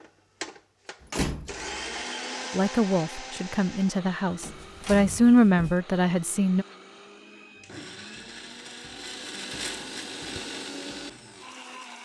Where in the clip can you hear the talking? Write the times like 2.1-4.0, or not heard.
2.5-6.7.